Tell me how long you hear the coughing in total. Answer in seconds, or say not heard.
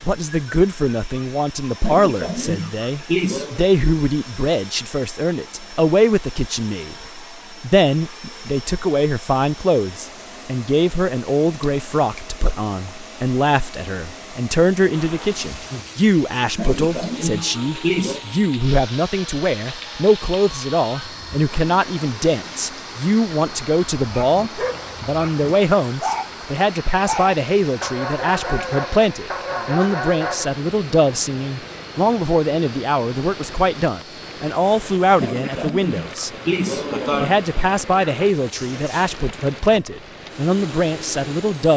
6 s.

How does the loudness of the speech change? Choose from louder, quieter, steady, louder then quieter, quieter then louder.
steady.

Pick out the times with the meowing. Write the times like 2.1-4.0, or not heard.
not heard.